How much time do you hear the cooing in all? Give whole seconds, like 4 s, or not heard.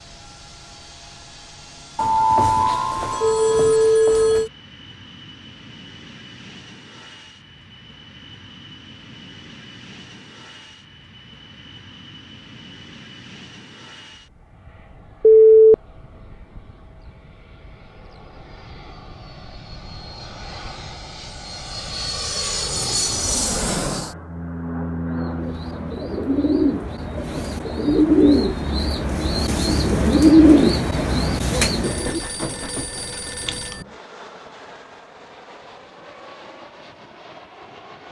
7 s.